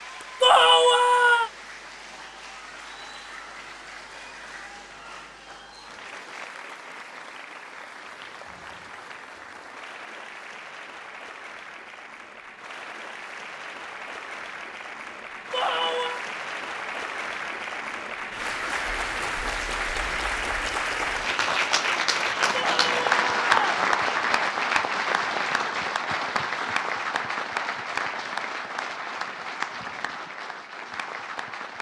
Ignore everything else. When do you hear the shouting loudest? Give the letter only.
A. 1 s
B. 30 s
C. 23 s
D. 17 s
A.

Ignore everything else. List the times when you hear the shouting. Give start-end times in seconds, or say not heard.
0.4-1.5, 15.5-16.2, 22.5-23.9.